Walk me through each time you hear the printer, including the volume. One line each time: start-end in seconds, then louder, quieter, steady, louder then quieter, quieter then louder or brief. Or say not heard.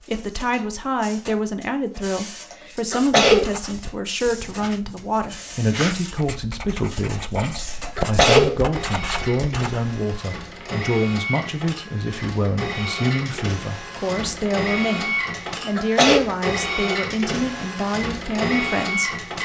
0.0-19.4 louder.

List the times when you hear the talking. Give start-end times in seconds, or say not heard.
0.1-19.4.